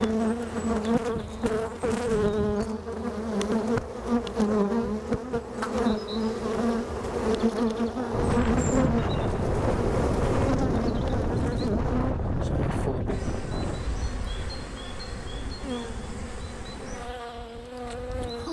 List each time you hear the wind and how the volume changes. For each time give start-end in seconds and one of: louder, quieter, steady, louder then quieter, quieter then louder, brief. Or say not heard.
8.1-18.4 quieter.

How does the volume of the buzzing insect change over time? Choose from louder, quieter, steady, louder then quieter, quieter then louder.
quieter.